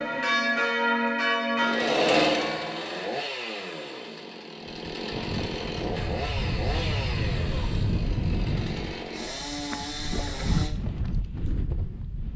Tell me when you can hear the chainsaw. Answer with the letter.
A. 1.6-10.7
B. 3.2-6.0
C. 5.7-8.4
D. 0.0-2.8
A.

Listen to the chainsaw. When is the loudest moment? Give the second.
2 s.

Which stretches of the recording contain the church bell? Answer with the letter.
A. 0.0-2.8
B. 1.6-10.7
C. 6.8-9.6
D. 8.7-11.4
A.